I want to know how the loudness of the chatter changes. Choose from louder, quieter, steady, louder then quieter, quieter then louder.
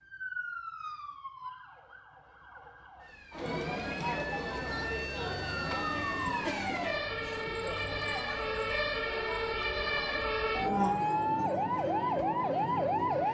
quieter.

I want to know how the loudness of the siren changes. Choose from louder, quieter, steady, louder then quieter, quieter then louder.
louder.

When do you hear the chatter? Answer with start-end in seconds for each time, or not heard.
3.3-13.2.